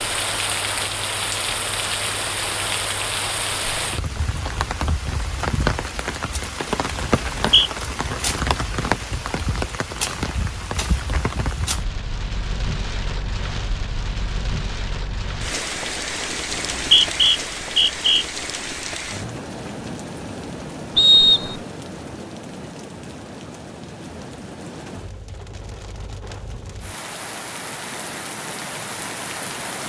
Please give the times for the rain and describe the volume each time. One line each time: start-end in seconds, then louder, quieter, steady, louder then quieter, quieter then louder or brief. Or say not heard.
0.0-29.8 quieter.